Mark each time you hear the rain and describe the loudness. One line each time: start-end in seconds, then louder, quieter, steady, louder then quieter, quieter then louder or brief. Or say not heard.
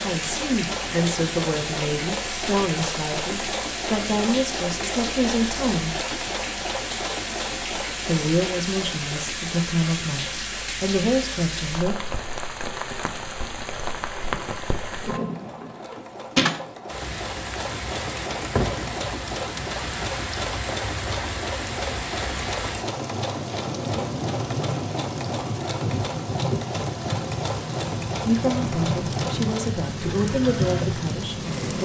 0.0-31.8 steady.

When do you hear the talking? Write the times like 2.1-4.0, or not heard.
0.0-6.0, 8.1-12.1, 28.2-31.8.